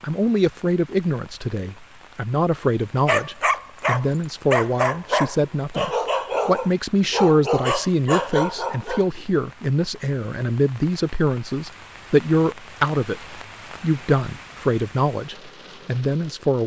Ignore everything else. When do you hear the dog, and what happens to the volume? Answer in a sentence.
You can hear the dog from 3.0 to 9.1 s, at a steady volume.